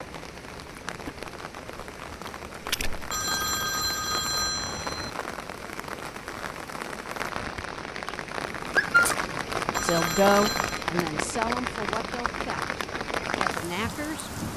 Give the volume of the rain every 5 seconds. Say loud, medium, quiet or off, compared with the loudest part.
medium, loud, loud.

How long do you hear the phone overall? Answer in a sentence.
You can hear the phone for 3 seconds altogether.